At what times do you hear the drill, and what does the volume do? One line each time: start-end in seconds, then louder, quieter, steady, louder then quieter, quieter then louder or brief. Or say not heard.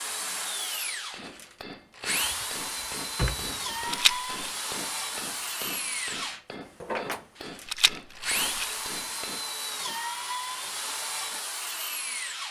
0.0-12.4 steady.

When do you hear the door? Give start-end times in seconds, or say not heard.
2.2-3.6.